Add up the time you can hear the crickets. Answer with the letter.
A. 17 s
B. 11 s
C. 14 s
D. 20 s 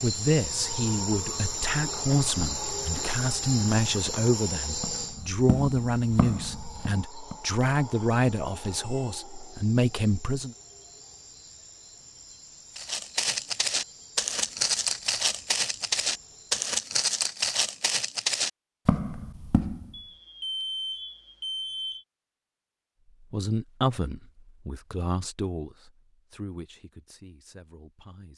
A.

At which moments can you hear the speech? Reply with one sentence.
The speech can be heard from 0.0 to 10.6 s and from 23.2 to 28.3 s.